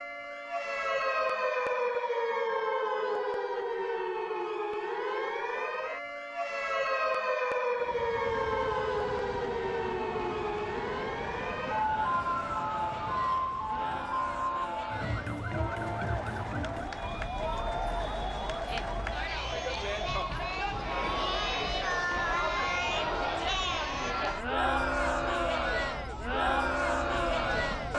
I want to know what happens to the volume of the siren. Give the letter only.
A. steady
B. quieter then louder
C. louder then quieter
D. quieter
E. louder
D.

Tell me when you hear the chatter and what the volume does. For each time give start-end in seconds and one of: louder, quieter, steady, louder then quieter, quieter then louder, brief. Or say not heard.
0.3-27.9 louder.